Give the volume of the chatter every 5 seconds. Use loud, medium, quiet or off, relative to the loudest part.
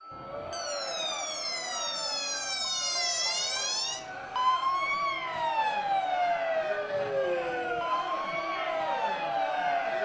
medium, loud.